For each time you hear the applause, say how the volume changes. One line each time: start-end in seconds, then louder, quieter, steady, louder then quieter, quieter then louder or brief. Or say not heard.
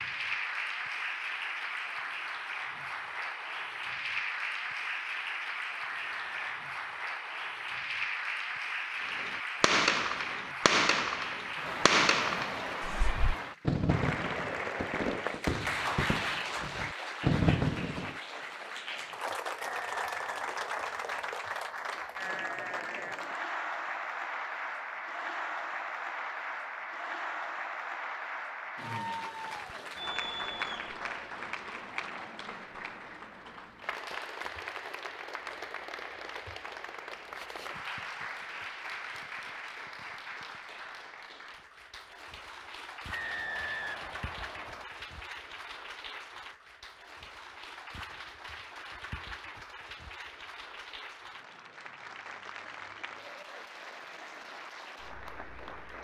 0.0-55.9 quieter.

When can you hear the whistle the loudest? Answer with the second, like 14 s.
44 s.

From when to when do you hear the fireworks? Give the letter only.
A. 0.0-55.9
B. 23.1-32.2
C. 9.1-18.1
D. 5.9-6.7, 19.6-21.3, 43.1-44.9
C.